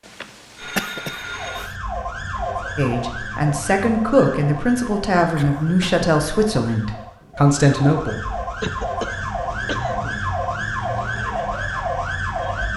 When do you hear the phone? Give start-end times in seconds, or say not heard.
0.0-1.7.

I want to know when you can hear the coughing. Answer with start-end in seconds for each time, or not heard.
0.6-1.8, 5.3-6.1, 8.6-10.2.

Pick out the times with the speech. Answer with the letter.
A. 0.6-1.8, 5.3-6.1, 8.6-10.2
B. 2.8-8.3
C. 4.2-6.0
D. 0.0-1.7
B.